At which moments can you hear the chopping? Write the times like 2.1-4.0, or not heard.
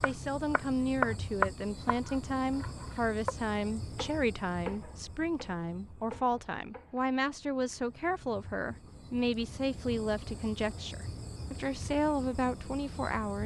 0.0-7.0.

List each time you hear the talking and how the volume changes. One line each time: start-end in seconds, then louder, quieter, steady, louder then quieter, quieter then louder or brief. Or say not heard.
0.0-13.4 steady.